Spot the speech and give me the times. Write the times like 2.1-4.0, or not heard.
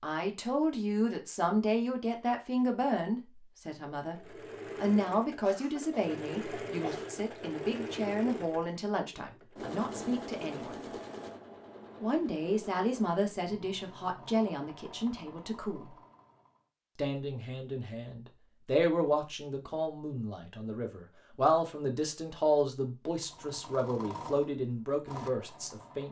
0.0-10.8, 12.0-15.9, 16.9-26.0.